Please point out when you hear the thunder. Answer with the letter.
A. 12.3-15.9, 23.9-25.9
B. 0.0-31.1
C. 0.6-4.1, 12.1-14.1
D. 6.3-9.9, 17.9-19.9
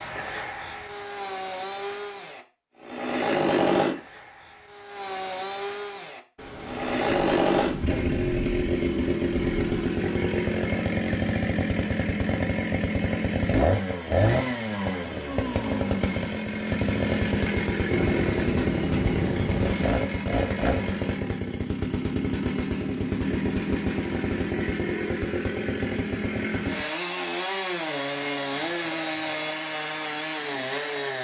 D.